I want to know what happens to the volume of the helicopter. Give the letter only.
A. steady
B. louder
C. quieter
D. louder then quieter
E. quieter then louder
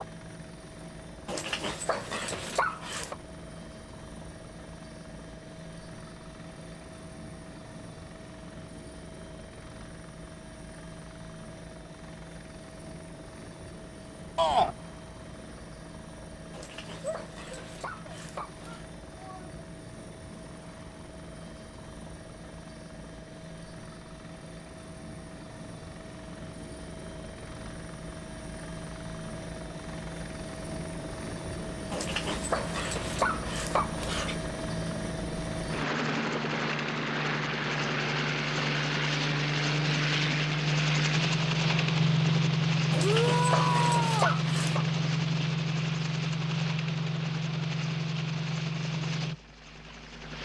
B.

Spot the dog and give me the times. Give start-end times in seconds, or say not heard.
1.2-3.1, 16.5-18.9, 31.9-34.4, 42.9-44.9.